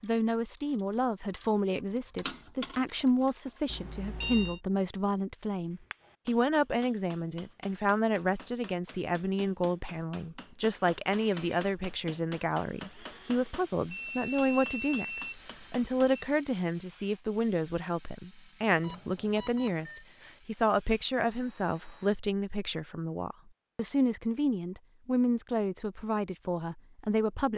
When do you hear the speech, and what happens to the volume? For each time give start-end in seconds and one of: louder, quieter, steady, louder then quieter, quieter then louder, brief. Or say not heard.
0.0-27.5 steady.